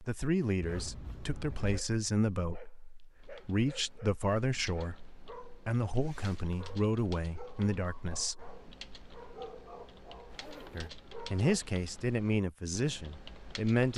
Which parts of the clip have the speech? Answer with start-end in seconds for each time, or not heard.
0.0-8.6, 10.7-13.9.